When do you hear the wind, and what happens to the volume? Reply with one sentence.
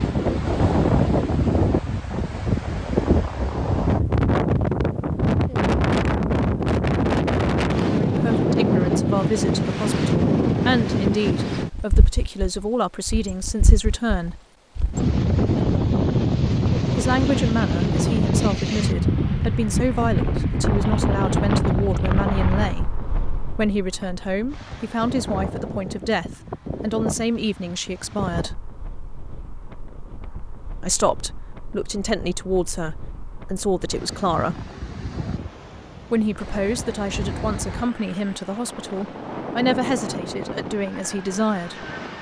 The wind can be heard from 0.0 to 42.1 s, getting quieter.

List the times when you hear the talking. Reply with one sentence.
You can hear the talking from 8.1 to 14.3 s, from 16.9 to 28.6 s, from 30.8 to 34.7 s and from 36.1 to 41.9 s.